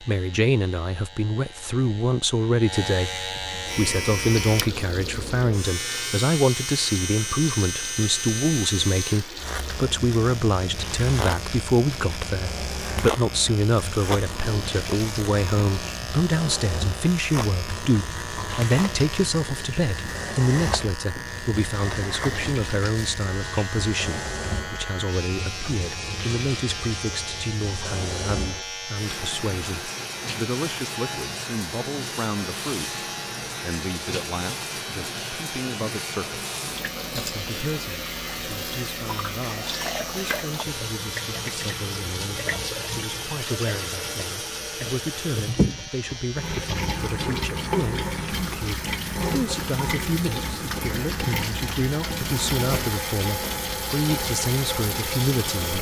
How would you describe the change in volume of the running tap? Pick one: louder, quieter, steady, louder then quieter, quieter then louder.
louder.